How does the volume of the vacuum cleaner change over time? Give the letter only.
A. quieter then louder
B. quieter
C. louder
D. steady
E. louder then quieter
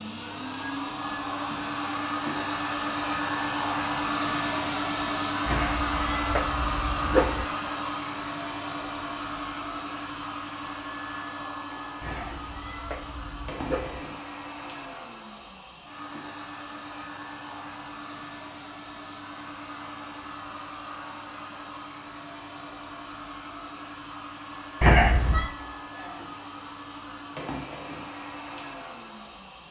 B.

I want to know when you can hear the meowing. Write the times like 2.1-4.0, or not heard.
5.5-7.5, 12.0-14.0, 24.8-25.5.